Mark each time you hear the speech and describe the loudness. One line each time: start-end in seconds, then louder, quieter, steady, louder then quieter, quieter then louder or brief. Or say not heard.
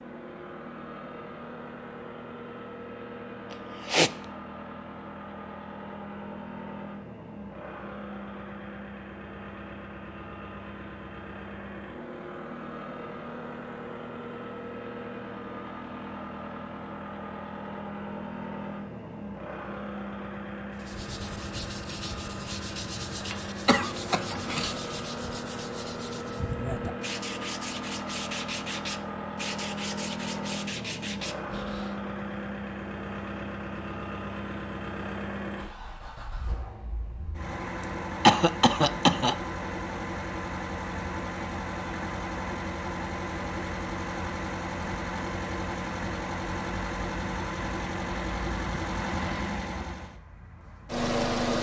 not heard.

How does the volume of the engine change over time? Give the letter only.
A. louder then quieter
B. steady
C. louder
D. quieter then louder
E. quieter
C.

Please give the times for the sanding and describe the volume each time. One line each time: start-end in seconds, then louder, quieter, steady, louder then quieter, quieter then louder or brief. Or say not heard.
20.8-32.0 steady.